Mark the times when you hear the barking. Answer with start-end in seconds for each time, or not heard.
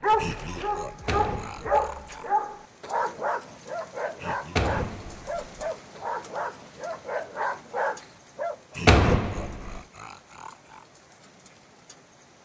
0.0-8.6.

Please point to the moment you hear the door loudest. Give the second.
9 s.